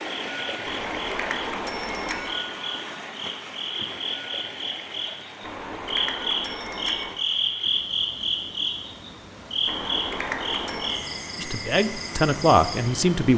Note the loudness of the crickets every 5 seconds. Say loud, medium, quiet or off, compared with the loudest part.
medium, loud, medium.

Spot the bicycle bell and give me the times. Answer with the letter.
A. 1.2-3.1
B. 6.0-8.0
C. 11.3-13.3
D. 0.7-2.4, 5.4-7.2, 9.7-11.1
D.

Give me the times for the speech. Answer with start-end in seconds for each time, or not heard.
11.3-13.3.